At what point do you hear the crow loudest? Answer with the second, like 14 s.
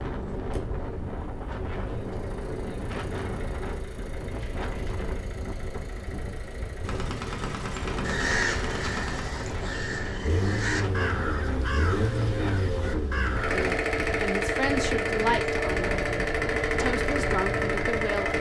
8 s.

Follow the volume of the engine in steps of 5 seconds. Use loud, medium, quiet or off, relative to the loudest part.
quiet, quiet, loud, loud.